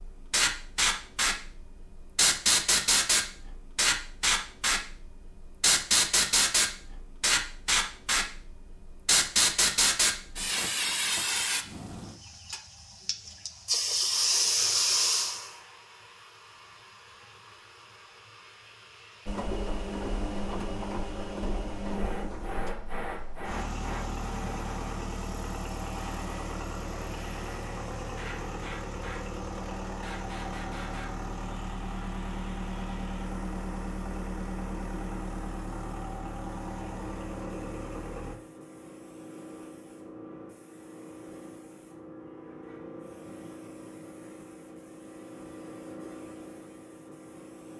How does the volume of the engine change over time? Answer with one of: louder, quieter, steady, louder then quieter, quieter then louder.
steady.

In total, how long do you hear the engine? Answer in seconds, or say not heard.
19 s.